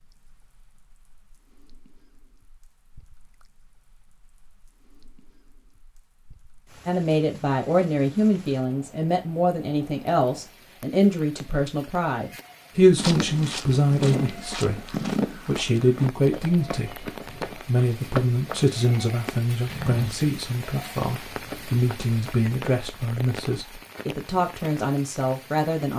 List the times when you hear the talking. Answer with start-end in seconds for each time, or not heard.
6.8-25.9.